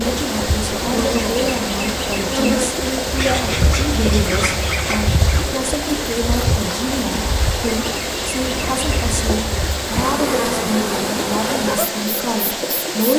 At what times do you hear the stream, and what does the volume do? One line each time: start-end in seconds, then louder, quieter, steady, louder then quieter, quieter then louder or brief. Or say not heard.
0.0-13.1 steady.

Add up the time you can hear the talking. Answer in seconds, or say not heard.
13 s.